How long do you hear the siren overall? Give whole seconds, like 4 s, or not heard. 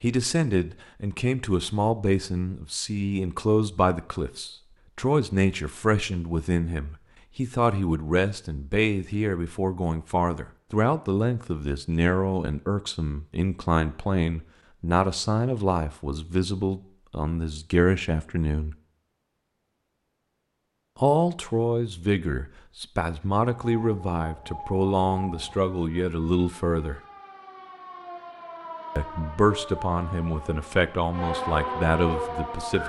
9 s.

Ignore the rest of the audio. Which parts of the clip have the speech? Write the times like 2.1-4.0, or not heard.
0.0-18.8, 20.9-27.0, 28.9-32.8.